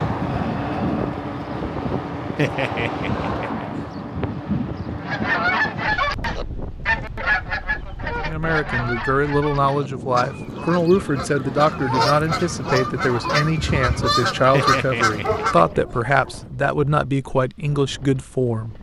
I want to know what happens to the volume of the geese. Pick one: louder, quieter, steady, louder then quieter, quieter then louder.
quieter then louder.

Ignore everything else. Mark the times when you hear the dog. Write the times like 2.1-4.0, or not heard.
2.4-3.9, 14.5-16.4.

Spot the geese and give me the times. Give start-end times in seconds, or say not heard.
5.0-15.8.